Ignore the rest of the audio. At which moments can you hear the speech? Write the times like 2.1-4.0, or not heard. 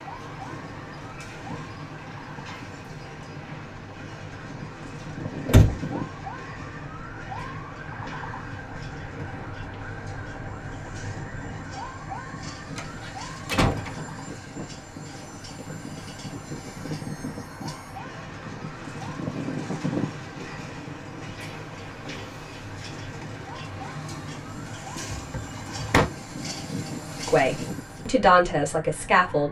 27.2-29.4.